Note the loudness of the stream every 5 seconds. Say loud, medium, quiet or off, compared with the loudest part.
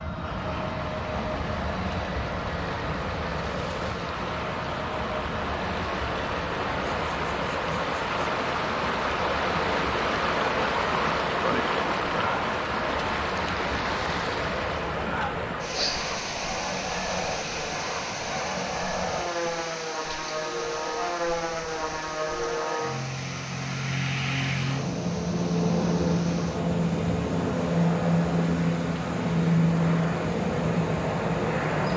medium, loud, loud, medium, quiet, quiet, quiet.